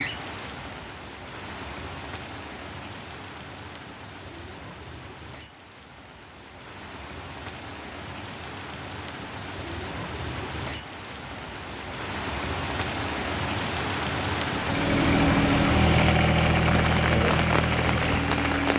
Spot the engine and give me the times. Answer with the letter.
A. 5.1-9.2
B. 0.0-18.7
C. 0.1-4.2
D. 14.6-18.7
D.